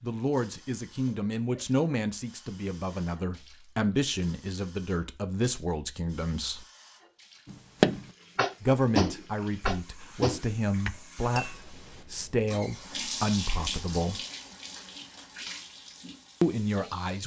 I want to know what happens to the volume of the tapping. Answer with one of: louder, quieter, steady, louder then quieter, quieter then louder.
louder then quieter.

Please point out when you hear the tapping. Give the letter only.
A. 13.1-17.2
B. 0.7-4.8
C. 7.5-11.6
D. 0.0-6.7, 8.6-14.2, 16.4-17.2
C.